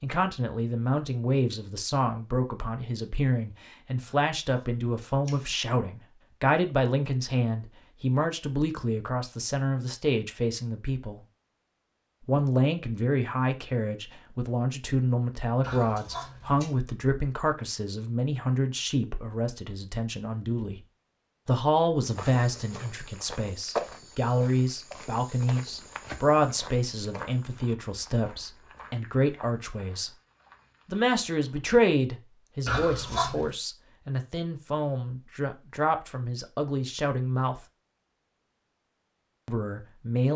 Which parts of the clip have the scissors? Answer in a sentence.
The scissors can be heard from 4.1 to 5.6 s, from 15.6 to 16.7 s and from 32.6 to 33.5 s.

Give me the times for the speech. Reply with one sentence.
The speech can be heard from 0.0 to 11.2 s, from 12.2 to 20.8 s, from 21.4 to 30.1 s, from 30.9 to 37.6 s and from 39.5 to 40.3 s.